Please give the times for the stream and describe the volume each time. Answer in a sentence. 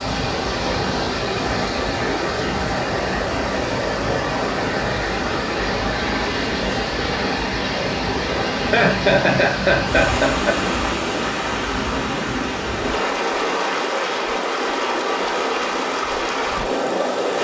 You can hear the stream from 0.0 to 17.3 s, at a steady volume.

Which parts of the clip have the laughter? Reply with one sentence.
The laughter can be heard from 8.6 to 10.6 s.